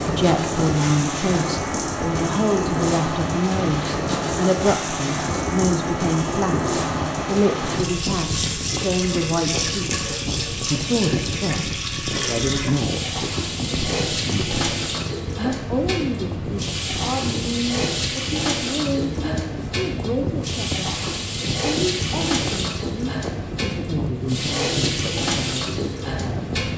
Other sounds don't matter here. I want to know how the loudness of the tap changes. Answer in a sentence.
The loudness of the tap stays about the same.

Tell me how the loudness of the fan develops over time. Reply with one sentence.
The volume of the fan stays about the same.